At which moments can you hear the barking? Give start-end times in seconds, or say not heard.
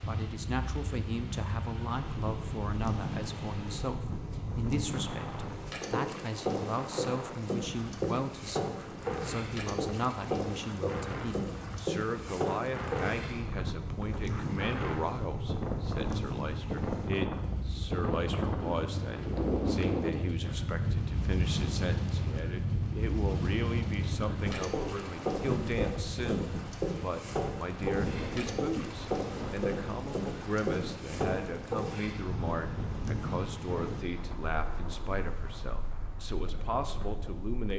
not heard.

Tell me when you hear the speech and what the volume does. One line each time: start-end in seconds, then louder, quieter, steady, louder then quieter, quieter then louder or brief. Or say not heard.
0.1-37.7 steady.